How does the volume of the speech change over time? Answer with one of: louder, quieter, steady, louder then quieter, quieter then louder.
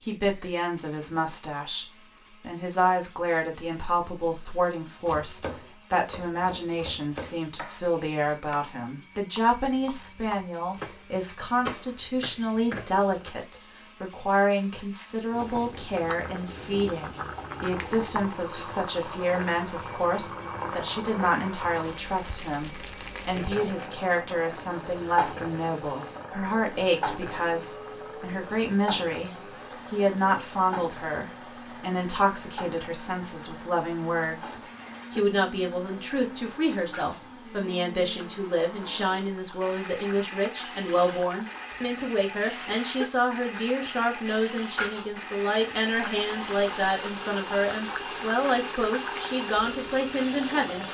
steady.